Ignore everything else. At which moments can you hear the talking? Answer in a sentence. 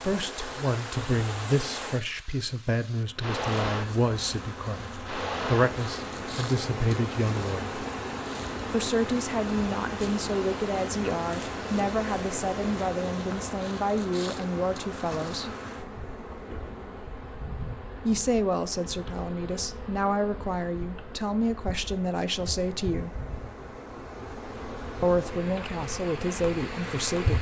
You can hear the talking from 0.0 to 7.7 s, from 8.7 to 15.5 s, from 18.1 to 23.2 s and from 25.0 to 27.3 s.